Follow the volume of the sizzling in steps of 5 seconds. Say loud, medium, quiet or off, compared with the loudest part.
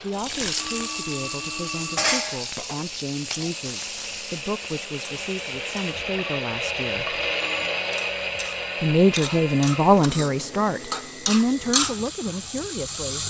loud, medium, loud.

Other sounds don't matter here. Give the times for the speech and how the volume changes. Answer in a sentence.
You can hear the speech from 0.0 to 7.2 s, at a steady volume; and from 8.8 to 13.2 s, getting quieter.